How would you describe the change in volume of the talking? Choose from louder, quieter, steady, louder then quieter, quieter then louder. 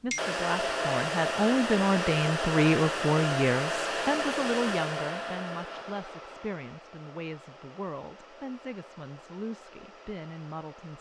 quieter.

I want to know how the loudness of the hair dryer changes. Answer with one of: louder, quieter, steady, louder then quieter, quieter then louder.
quieter.